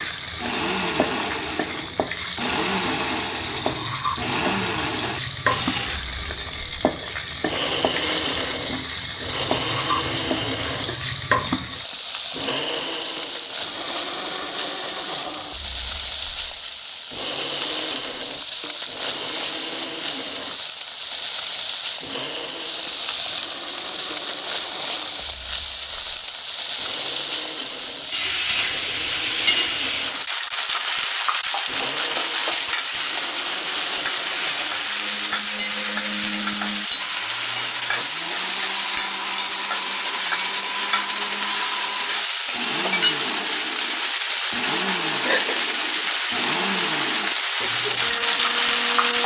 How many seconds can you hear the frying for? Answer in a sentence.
The frying can be heard for 49 seconds in total.